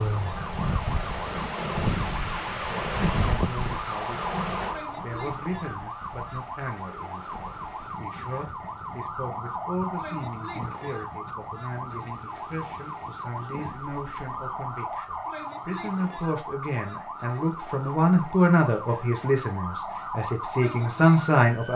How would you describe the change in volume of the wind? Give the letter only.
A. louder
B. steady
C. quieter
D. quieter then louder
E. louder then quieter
C.